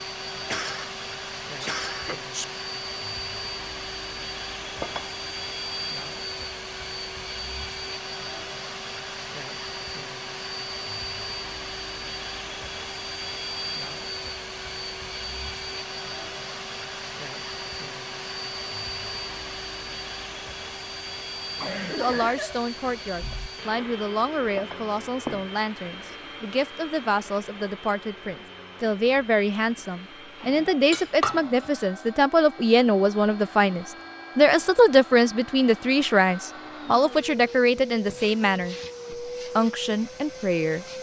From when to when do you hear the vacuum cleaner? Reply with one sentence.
You can hear the vacuum cleaner from 0.0 to 40.9 s.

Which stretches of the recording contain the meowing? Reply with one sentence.
You can't hear the meowing here.